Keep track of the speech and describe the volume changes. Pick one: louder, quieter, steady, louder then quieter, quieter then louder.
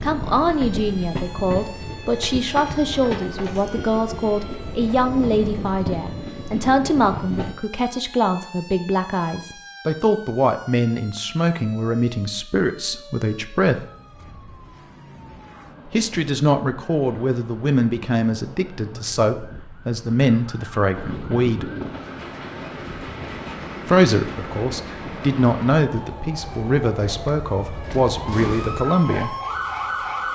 steady.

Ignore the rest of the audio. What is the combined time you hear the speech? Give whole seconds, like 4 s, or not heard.
25 s.